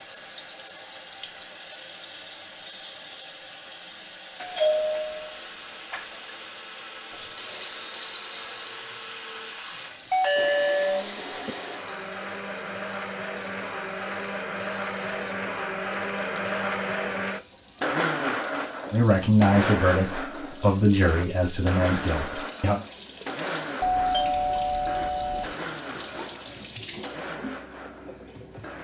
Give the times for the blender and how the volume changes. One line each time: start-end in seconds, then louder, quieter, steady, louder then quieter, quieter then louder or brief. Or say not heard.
4.5-28.7 louder then quieter.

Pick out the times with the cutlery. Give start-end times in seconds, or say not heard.
not heard.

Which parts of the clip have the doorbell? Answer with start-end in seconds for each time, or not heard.
4.4-6.0, 10.1-11.6, 23.8-25.6.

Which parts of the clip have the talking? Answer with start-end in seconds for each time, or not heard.
18.9-22.8.